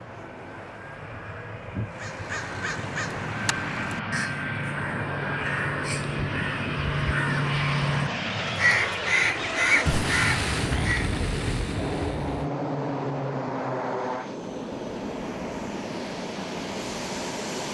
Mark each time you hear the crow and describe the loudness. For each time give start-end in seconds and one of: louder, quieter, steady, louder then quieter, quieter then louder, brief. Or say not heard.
1.9-11.1 louder.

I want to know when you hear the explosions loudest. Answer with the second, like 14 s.
10 s.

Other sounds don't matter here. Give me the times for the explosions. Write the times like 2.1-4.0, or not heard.
9.8-12.5.